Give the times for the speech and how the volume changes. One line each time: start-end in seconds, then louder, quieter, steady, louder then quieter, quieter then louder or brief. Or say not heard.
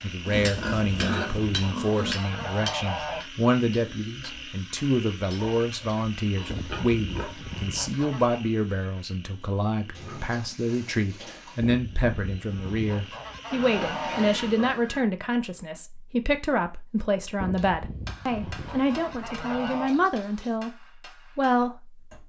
0.0-22.0 steady.